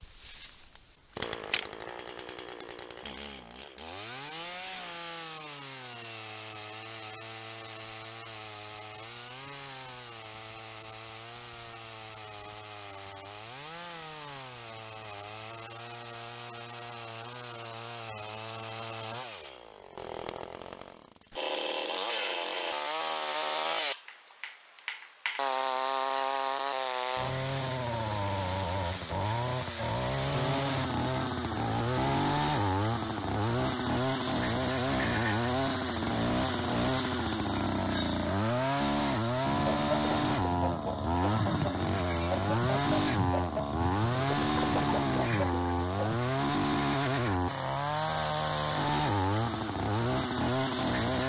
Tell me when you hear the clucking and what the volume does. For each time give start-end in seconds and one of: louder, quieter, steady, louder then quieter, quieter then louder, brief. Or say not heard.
39.5-46.2 steady.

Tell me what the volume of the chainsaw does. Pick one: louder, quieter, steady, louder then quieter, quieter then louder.
louder.